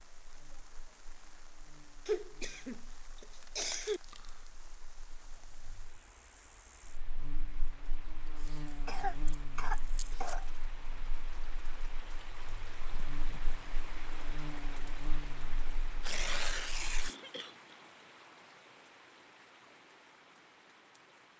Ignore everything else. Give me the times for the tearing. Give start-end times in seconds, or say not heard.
3.4-4.5, 8.3-10.6, 15.9-17.2.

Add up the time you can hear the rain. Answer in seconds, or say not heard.
21 s.